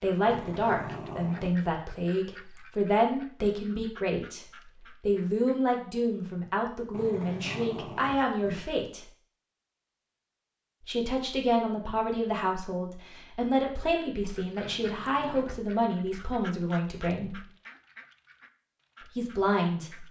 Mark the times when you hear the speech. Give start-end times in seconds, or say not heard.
0.0-9.0, 10.8-17.4, 19.1-20.0.